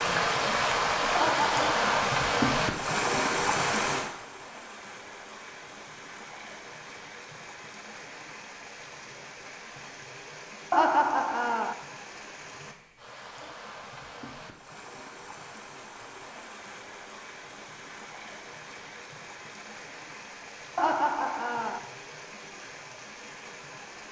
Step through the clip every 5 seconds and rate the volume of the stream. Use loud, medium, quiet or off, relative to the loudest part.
loud, quiet, quiet, quiet, quiet.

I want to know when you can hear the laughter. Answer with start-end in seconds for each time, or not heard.
1.1-2.0, 10.7-11.8, 20.8-21.8.